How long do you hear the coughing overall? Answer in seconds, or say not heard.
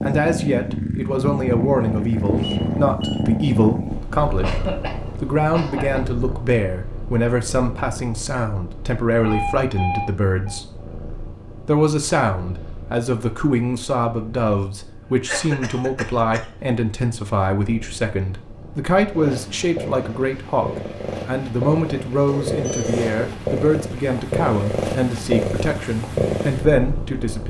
3 s.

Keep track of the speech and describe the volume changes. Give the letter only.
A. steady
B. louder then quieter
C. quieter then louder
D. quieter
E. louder
A.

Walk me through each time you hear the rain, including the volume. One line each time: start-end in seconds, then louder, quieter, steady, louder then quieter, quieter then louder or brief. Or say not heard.
not heard.